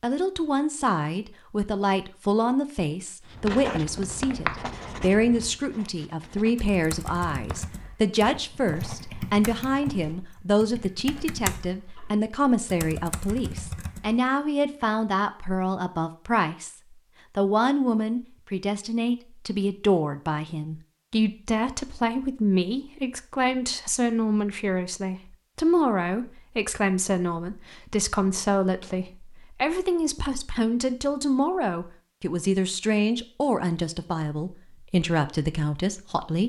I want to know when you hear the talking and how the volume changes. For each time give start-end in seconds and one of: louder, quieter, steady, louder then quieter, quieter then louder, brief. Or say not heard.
0.0-36.4 steady.